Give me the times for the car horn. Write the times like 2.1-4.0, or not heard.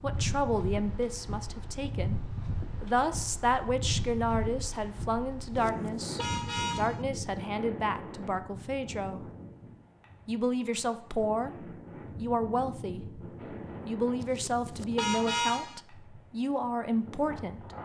5.4-7.0, 14.2-15.8.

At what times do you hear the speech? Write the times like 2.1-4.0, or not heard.
0.0-2.2, 2.8-9.3, 10.2-13.2, 13.8-17.6.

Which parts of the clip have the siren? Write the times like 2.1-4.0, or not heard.
not heard.